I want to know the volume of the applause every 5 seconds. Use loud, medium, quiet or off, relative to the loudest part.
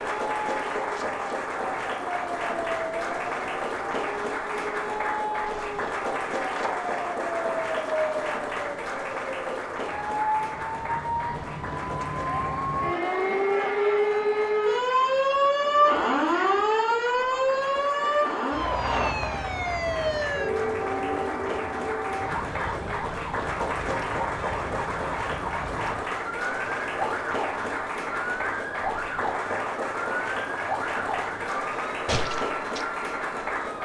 loud, loud, medium, medium, loud, loud, loud.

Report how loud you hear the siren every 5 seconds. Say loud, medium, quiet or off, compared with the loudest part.
medium, medium, loud, loud, medium, medium, medium.